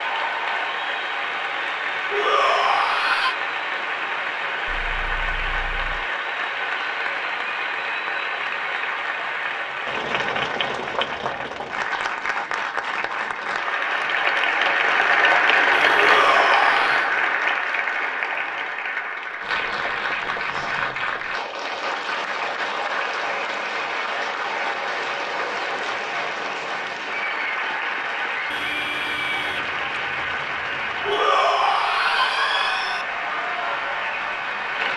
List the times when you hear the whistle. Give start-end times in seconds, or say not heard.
not heard.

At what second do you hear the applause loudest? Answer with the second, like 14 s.
16 s.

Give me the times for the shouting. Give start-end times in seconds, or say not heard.
2.1-3.4, 15.9-17.1, 31.1-33.0.